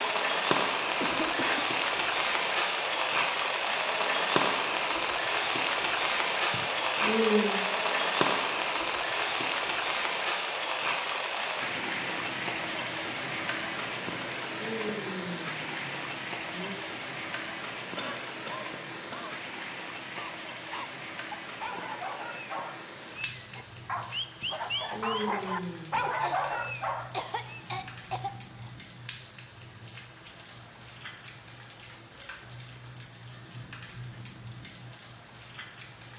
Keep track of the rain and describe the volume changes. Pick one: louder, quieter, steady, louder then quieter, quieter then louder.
quieter.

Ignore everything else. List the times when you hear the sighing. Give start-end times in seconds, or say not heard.
6.5-7.6, 14.1-16.8, 24.4-26.4.